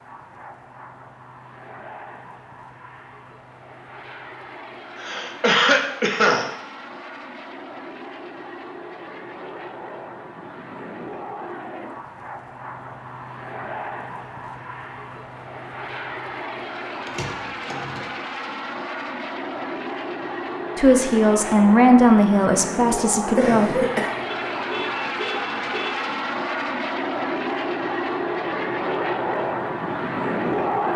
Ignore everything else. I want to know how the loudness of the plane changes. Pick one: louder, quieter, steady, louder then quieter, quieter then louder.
louder.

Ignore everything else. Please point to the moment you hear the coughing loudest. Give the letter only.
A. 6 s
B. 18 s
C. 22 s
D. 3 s
A.